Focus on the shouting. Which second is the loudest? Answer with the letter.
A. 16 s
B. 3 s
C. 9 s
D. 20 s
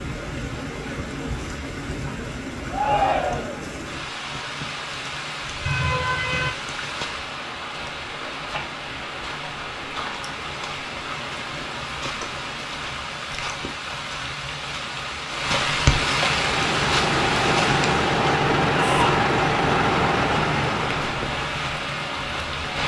B.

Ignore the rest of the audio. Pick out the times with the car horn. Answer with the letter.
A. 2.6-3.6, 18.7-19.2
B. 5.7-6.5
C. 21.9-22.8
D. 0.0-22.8
B.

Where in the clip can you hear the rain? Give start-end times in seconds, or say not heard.
0.0-22.8.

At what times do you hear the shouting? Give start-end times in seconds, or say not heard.
2.6-3.6, 18.7-19.2.